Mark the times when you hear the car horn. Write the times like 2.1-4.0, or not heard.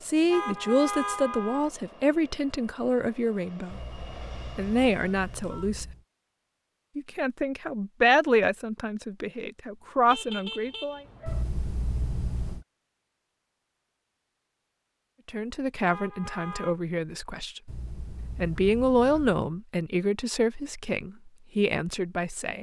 0.2-1.7, 10.1-11.4, 15.8-16.8.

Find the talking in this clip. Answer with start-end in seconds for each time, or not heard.
0.0-4.0, 4.5-5.8, 7.0-11.0, 15.2-17.6, 18.4-22.5.